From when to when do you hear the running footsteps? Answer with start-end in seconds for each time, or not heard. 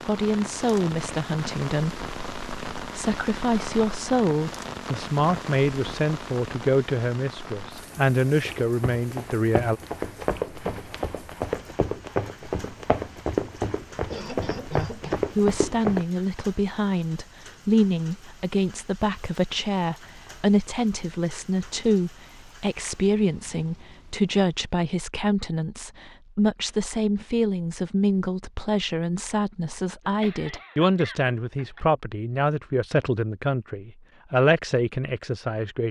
8.3-16.1.